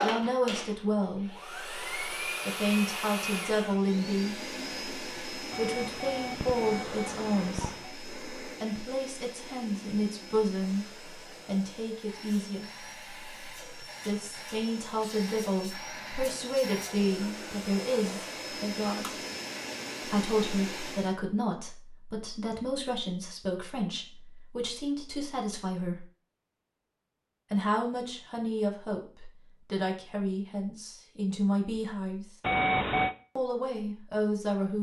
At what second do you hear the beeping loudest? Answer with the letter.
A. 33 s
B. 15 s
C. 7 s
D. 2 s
A.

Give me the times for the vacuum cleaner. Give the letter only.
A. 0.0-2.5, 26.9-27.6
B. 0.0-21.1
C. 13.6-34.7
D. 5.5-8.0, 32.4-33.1
B.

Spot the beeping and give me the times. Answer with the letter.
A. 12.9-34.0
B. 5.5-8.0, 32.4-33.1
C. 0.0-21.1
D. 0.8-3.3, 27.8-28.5
B.